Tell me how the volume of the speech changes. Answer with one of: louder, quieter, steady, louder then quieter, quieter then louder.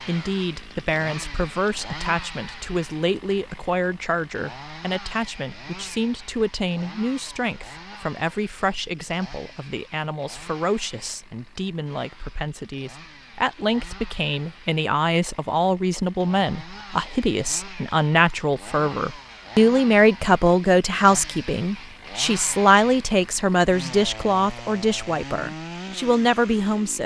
louder.